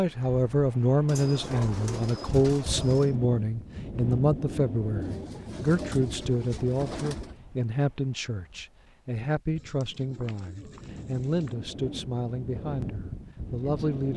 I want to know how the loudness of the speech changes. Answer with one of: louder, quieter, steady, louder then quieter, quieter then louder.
quieter.